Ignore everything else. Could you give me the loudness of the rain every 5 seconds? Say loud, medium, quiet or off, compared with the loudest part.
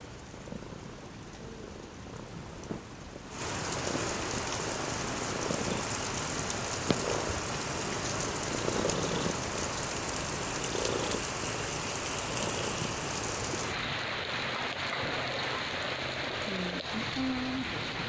medium, loud, loud, loud.